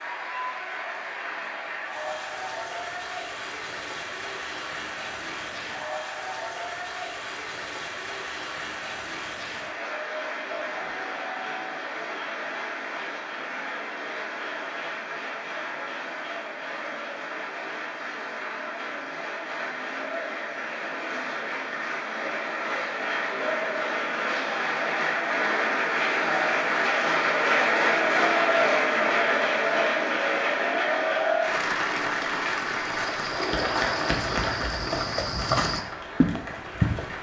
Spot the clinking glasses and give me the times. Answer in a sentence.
You can't hear the clinking glasses here.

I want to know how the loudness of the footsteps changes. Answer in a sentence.
The loudness of the footsteps goes up.